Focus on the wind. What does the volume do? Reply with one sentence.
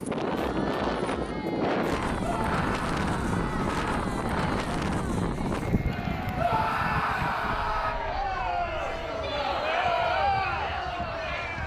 The volume of the wind goes down.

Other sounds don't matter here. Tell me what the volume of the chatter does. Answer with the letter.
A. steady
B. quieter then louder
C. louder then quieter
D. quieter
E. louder
E.